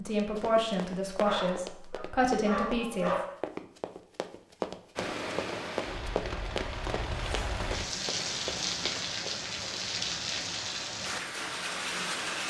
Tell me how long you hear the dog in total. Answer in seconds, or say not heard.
2 s.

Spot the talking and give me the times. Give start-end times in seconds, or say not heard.
0.0-3.1.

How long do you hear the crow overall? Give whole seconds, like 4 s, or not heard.
not heard.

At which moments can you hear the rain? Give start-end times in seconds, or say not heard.
5.0-12.4.